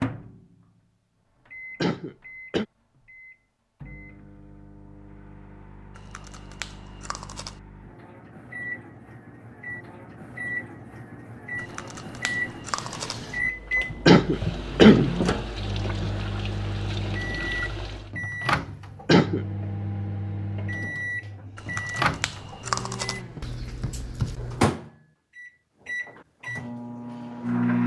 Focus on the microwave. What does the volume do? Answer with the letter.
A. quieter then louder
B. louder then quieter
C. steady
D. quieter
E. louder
E.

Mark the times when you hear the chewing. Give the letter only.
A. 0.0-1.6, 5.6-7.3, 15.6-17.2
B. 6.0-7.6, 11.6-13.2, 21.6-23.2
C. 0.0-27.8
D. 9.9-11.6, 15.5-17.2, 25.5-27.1
B.